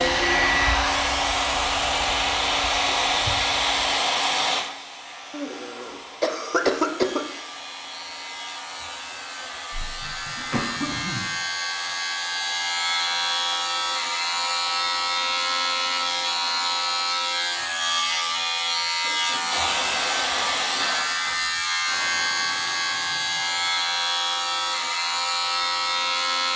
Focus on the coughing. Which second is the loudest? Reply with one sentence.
The loudest moment of the coughing is at 7 seconds.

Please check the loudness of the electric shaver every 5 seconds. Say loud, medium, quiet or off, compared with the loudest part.
medium, quiet, loud, loud, loud, loud.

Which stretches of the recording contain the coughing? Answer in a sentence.
The coughing can be heard from 5.3 to 7.2 s, from 9.7 to 11.3 s and from 19.0 to 20.9 s.